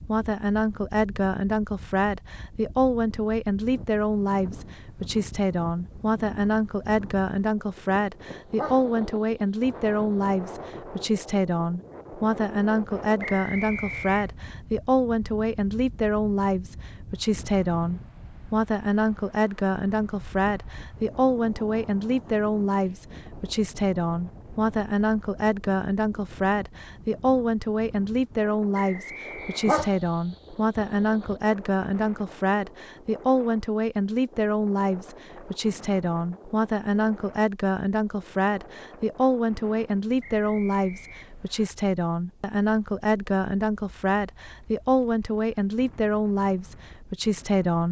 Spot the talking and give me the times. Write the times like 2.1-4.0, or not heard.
0.0-47.8.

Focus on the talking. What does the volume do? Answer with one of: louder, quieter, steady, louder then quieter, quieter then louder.
steady.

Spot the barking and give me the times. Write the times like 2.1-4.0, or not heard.
8.6-10.2, 29.6-31.4.